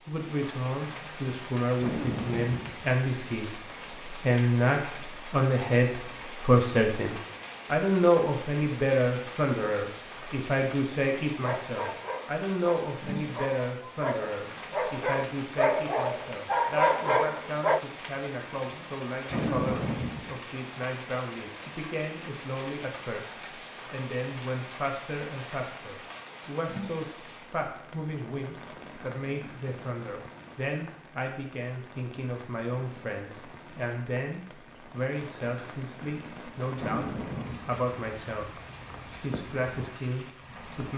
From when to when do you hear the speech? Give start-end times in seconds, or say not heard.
0.1-40.9.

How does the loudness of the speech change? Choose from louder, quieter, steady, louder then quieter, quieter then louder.
quieter.